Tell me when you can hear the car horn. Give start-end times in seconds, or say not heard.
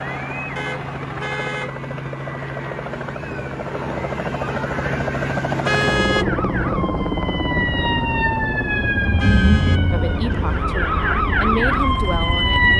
0.6-1.7, 5.7-6.2, 9.2-9.8.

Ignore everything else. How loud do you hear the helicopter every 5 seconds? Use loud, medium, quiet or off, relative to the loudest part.
loud, loud, medium.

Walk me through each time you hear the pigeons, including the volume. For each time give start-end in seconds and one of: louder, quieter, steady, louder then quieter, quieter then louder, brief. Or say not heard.
not heard.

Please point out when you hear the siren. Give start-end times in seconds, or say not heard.
6.2-12.7.